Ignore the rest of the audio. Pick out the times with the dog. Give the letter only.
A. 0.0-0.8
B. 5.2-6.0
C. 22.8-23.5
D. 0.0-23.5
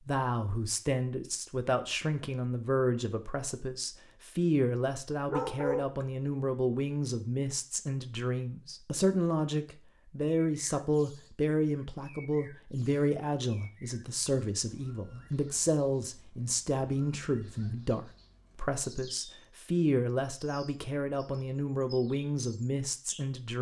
B.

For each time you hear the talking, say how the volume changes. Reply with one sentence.
The talking can be heard from 0.0 to 23.5 s, at a steady volume.